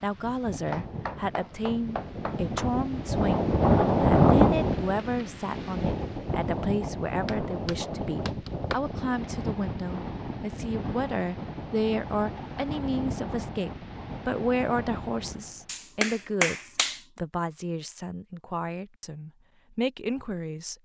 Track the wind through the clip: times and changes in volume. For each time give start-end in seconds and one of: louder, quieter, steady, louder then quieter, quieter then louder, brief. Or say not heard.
0.0-15.7 louder then quieter.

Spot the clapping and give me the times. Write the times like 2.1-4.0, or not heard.
0.7-2.7, 7.2-8.9, 15.7-17.0.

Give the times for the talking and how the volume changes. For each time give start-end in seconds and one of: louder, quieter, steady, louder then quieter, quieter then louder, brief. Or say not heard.
0.0-20.8 steady.